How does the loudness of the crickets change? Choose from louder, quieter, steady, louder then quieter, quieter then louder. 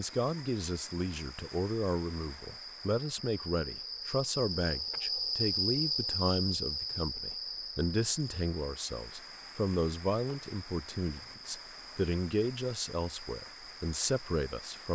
louder then quieter.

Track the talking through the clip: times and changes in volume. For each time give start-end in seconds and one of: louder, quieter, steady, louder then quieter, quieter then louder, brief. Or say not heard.
0.0-14.9 steady.